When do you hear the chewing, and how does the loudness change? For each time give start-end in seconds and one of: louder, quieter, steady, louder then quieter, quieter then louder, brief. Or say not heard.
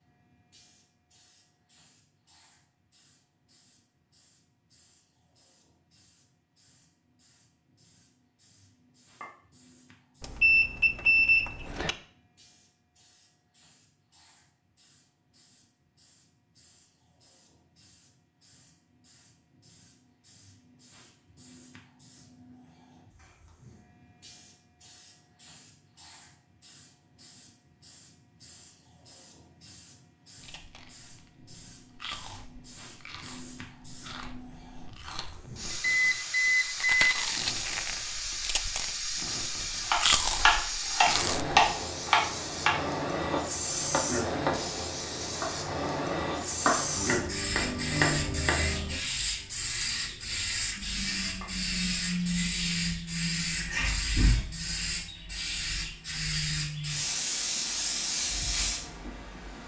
30.4-41.6 louder.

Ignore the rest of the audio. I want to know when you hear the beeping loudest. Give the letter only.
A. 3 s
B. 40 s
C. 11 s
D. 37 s
C.